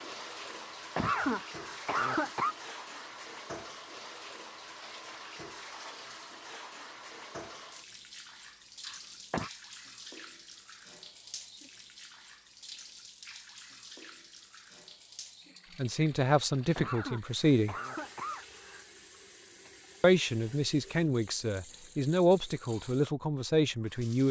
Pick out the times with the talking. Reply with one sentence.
The talking can be heard from 15.8 to 17.8 s and from 20.0 to 24.2 s.